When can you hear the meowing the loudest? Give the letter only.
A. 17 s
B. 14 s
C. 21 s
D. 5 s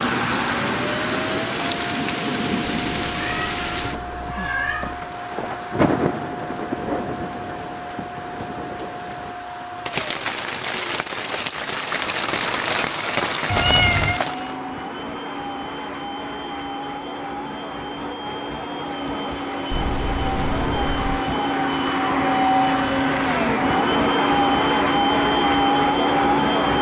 B.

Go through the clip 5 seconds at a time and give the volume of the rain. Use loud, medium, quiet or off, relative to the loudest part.
loud, loud, loud, off, off, off.